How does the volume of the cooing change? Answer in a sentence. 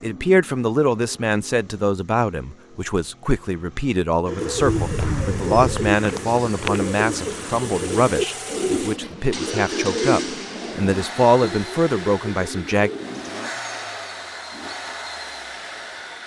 The loudness of the cooing goes down.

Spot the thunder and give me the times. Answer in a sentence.
The thunder can be heard from 4.5 to 6.0 s.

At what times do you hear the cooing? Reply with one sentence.
The cooing can be heard from 4.2 to 13.2 s.